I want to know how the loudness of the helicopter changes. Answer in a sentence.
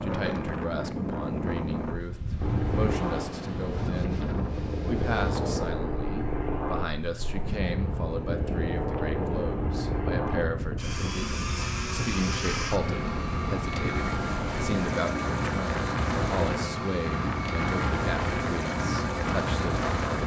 The loudness of the helicopter stays about the same.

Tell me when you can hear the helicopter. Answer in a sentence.
The helicopter can be heard from 2.4 to 20.2 s.